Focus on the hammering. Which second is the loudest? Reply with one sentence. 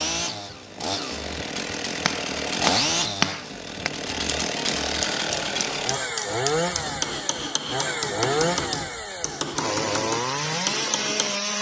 The volume of the hammering peaks at 3 seconds.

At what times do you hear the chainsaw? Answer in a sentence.
The chainsaw can be heard from 0.0 to 11.5 s.